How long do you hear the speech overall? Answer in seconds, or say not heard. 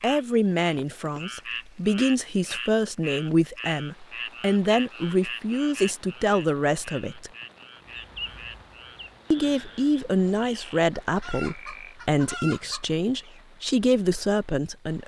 13 s.